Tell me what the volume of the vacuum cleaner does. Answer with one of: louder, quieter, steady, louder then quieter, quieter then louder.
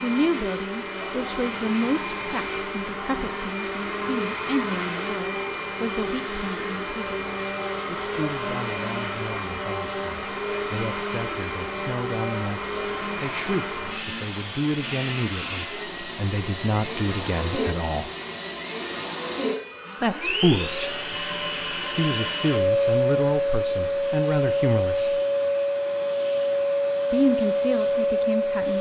louder.